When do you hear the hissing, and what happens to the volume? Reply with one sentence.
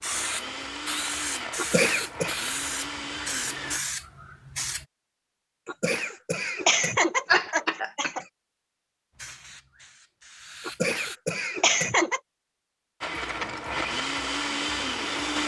The hissing can be heard from 0.0 to 4.8 s, at a steady volume; and briefly from 9.2 to 11.2 s.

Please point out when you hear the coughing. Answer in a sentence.
The coughing can be heard from 1.6 to 2.4 s, from 5.7 to 8.2 s and from 10.7 to 12.2 s.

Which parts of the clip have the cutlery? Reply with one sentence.
You can't hear the cutlery here.